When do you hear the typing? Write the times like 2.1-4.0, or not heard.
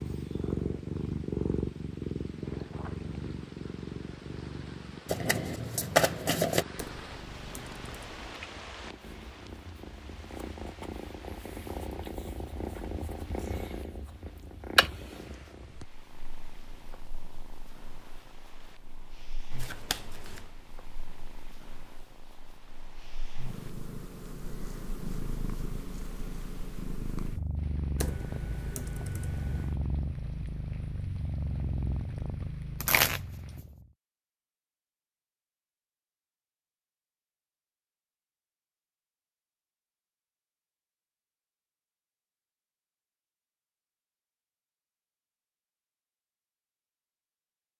6.8-8.4, 27.9-29.8.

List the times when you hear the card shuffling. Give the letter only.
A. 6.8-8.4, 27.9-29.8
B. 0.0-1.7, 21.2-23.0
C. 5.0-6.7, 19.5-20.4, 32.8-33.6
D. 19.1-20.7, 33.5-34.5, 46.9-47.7
C.